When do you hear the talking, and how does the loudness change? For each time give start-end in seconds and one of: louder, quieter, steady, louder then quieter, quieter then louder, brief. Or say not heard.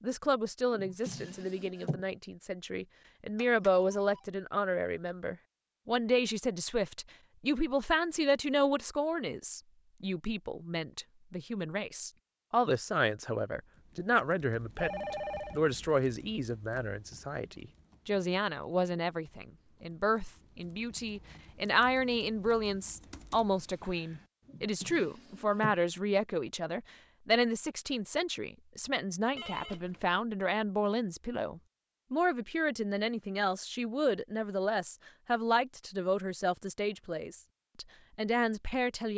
0.0-39.1 steady.